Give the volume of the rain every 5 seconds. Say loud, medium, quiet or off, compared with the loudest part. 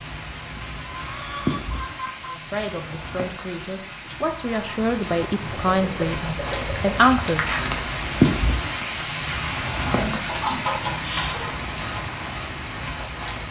medium, loud, medium.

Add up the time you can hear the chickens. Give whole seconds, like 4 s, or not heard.
5 s.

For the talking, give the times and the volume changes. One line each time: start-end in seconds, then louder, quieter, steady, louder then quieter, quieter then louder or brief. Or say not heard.
2.3-7.5 louder.